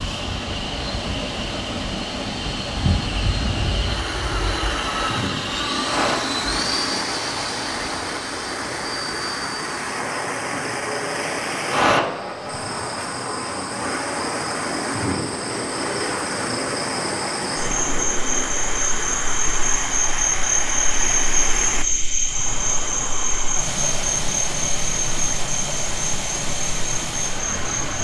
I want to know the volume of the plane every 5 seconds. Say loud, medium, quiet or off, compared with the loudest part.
loud, loud, loud, loud, off, off.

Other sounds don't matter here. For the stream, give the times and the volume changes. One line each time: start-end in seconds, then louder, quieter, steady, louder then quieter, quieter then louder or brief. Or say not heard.
0.0-28.0 steady.